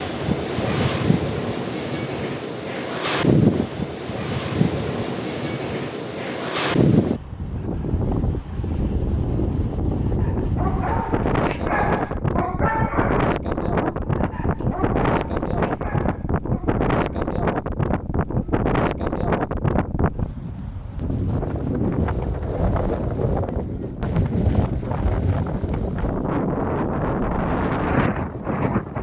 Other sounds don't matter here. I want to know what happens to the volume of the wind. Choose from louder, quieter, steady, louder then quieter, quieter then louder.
steady.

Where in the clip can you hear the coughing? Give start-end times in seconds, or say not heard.
not heard.